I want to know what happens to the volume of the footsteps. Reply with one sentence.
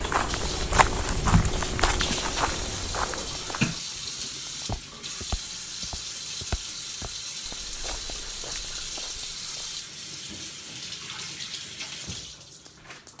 The volume of the footsteps goes down.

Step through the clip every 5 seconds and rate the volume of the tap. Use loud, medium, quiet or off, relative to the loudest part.
loud, loud, medium.